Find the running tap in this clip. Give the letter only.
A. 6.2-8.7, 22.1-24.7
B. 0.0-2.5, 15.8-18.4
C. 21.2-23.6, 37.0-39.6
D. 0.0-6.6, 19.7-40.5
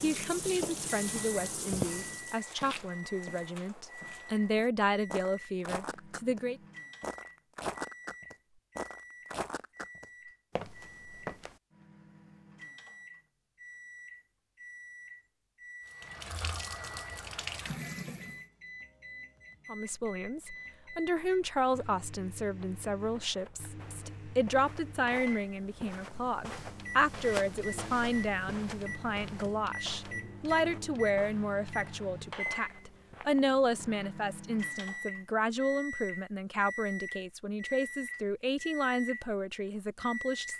B.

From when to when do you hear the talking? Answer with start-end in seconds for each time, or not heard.
0.0-6.6, 19.7-40.5.